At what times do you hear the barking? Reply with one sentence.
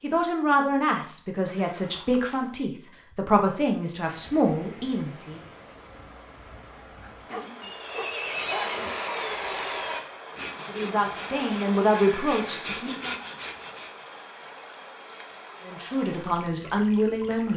The barking can be heard from 7.0 to 8.8 s.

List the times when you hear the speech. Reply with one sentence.
The speech can be heard from 0.0 to 5.4 s, from 10.7 to 13.2 s and from 15.7 to 17.5 s.